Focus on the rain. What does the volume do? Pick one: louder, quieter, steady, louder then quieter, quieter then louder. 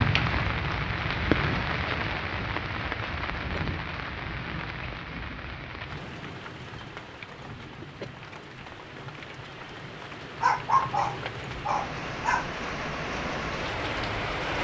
quieter then louder.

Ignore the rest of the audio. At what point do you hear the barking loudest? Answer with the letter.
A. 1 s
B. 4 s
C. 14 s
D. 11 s
D.